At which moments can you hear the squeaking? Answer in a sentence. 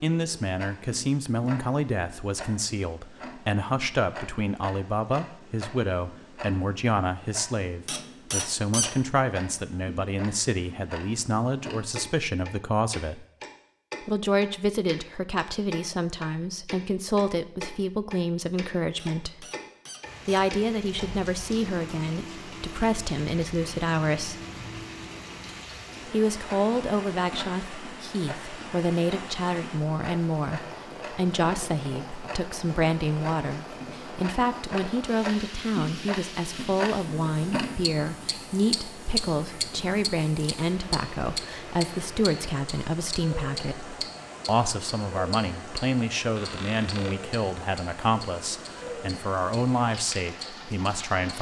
The squeaking can be heard from 7.8 to 8.9 s, from 18.9 to 20.5 s and from 46.4 to 47.2 s.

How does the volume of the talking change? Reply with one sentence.
The volume of the talking stays about the same.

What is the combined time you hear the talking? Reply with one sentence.
You can hear the talking for 48 seconds altogether.